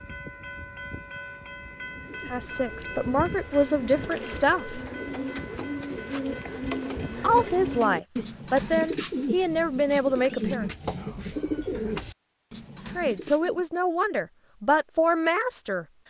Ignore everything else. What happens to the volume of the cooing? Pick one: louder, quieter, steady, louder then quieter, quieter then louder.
louder.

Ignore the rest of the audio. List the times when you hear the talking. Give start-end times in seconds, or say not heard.
2.2-4.8, 7.2-10.7, 12.9-15.8.